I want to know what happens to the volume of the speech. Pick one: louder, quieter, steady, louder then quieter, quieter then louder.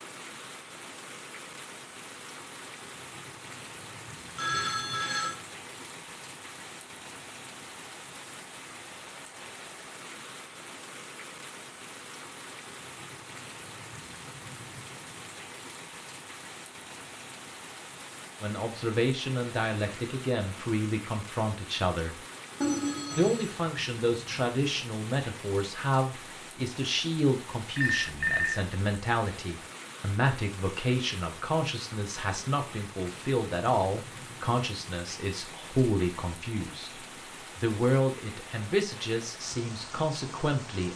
steady.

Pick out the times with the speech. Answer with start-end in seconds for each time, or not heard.
18.4-22.2, 23.1-40.9.